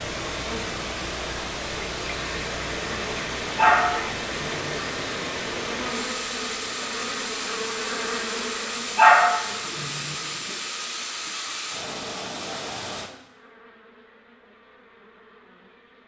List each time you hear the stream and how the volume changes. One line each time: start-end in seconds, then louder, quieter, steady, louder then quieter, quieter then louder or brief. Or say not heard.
0.0-13.1 steady.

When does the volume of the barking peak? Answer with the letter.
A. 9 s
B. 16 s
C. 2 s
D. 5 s
A.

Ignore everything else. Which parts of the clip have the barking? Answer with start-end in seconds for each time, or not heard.
3.5-4.8, 8.9-10.2.